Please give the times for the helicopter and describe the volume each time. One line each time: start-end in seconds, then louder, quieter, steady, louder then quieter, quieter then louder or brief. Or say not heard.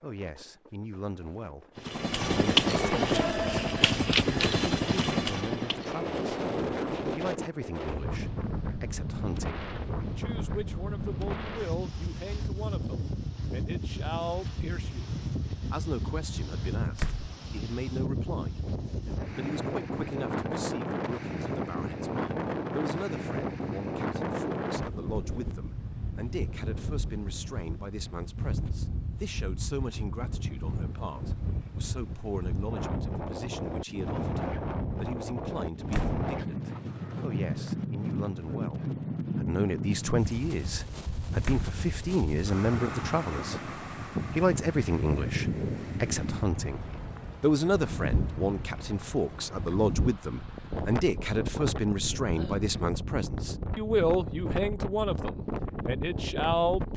1.8-7.6 quieter.